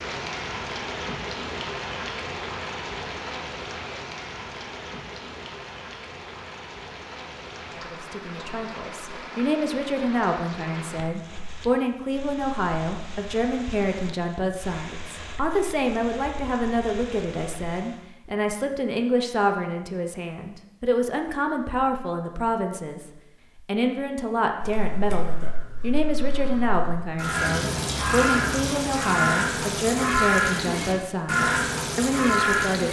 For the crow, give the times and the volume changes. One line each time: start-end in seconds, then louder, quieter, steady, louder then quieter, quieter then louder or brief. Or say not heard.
24.6-32.8 louder.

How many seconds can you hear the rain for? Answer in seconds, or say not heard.
18 s.